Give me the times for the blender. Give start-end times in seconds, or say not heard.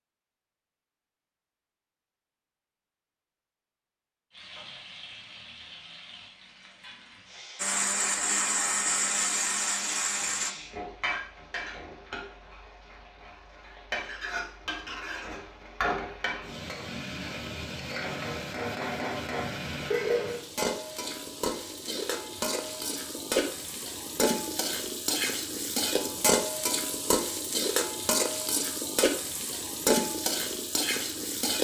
7.5-10.6.